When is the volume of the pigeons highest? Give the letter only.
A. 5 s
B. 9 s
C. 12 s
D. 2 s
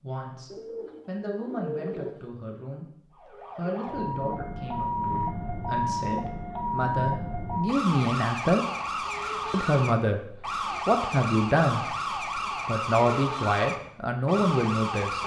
D.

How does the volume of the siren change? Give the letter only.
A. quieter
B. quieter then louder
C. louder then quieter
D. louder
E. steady
E.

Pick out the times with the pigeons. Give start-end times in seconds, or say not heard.
0.5-2.1.